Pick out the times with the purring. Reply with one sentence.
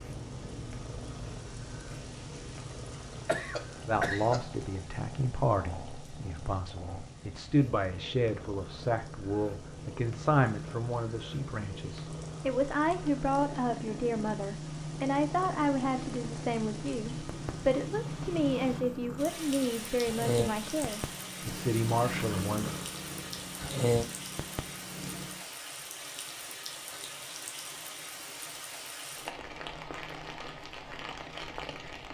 The purring can be heard from 0.0 to 25.4 s.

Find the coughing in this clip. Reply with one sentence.
You can hear the coughing from 3.2 to 4.5 s.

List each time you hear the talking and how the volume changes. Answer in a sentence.
The talking can be heard from 3.9 to 22.7 s, at a steady volume.